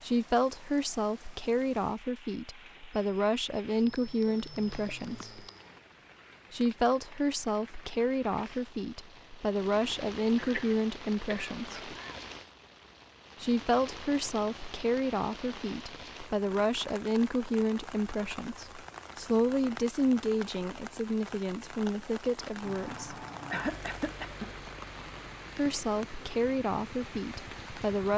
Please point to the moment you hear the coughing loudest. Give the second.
24 s.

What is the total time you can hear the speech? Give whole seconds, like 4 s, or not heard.
23 s.